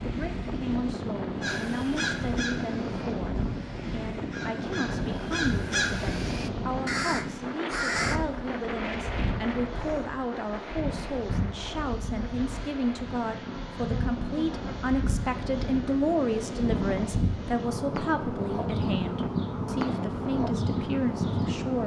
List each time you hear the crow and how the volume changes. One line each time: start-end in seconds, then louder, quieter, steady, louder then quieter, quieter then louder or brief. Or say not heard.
1.4-8.2 quieter then louder.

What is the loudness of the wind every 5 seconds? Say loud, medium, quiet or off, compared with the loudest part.
loud, loud, medium, loud, loud.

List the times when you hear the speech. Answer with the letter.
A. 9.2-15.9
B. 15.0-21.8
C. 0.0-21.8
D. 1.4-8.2
C.